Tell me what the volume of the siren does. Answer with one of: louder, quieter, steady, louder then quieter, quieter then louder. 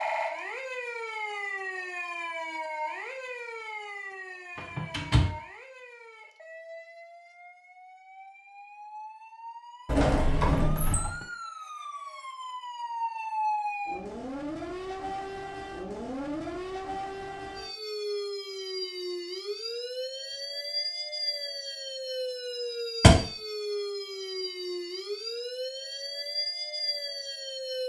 quieter then louder.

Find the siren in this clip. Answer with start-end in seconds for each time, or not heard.
0.0-27.8.